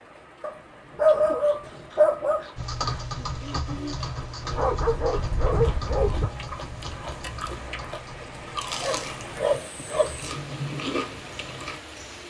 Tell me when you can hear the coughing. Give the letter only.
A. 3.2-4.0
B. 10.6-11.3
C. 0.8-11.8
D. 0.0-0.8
A.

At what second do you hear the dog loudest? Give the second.
1 s.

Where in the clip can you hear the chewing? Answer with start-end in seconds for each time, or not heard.
0.8-11.8.